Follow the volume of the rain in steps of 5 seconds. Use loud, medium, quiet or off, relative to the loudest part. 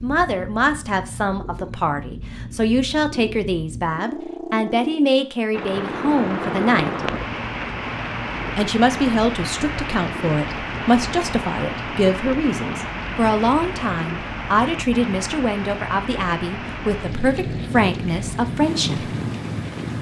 off, loud, loud, loud.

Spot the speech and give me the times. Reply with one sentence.
The speech can be heard from 0.0 to 7.0 s and from 8.6 to 19.1 s.